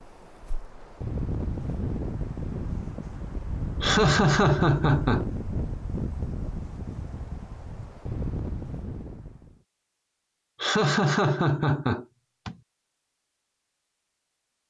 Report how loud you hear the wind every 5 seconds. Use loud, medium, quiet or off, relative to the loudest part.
loud, loud, off.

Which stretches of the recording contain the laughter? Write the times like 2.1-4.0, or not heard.
3.8-5.2, 10.6-12.6.